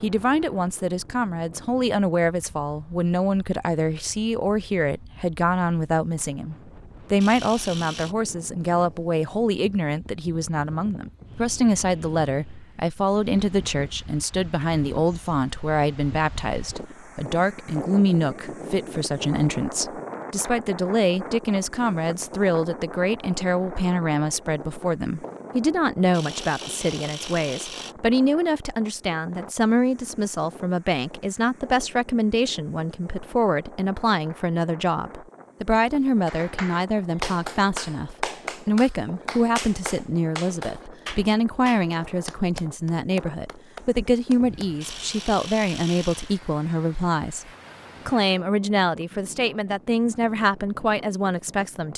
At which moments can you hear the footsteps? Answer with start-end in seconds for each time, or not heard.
not heard.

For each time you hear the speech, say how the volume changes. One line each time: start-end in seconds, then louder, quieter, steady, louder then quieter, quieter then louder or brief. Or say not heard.
0.0-51.9 steady.